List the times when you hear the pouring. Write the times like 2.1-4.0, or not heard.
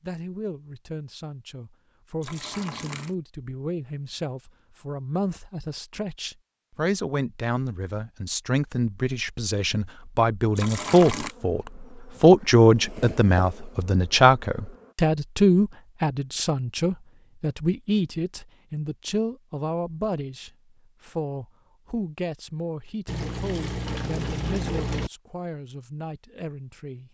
2.2-3.1, 10.6-11.3, 23.1-25.1.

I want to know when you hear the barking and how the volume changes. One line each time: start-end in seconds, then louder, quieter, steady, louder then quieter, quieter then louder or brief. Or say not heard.
not heard.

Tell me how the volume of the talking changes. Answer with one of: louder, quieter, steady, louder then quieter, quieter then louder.
louder then quieter.